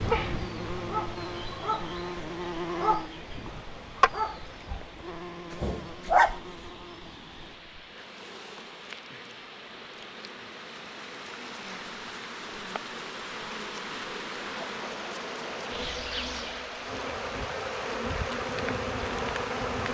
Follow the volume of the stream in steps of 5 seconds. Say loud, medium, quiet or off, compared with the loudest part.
medium, medium, loud, loud.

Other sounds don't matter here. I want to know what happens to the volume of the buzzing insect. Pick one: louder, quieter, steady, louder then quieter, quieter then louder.
quieter then louder.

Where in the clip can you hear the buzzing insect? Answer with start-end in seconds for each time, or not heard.
0.0-19.9.